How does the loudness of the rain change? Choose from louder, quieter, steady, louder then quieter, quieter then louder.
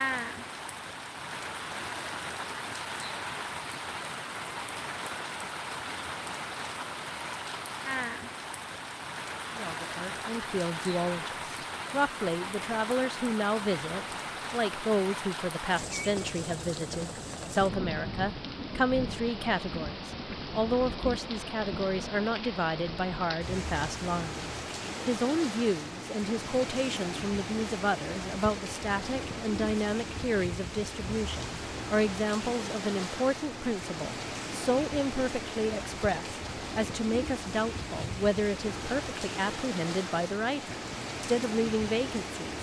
steady.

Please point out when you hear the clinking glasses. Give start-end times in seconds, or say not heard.
not heard.